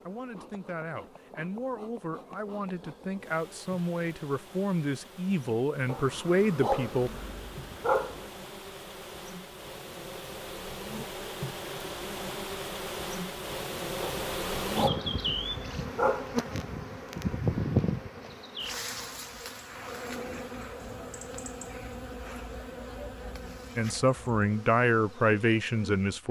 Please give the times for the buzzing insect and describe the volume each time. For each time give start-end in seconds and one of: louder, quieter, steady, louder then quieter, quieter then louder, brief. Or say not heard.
0.0-26.2 louder then quieter.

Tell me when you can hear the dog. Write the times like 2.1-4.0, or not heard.
5.8-8.3, 14.0-16.4.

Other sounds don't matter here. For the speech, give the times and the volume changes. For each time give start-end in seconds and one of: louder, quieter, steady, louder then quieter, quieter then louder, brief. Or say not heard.
0.1-7.1 louder
23.8-26.2 brief.